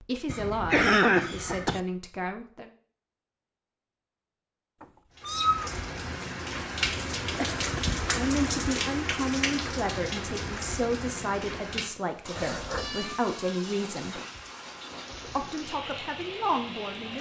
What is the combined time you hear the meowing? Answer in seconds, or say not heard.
2 s.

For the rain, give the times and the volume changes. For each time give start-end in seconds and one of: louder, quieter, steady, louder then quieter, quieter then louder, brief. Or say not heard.
5.1-17.1 quieter.